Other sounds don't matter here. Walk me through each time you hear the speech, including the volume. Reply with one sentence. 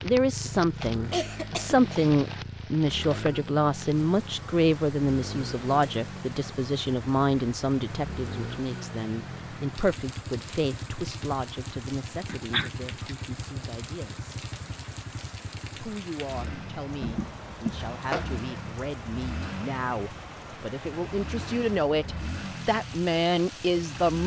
You can hear the speech from 0.0 to 14.3 s, getting quieter; and from 15.8 to 24.2 s, getting louder.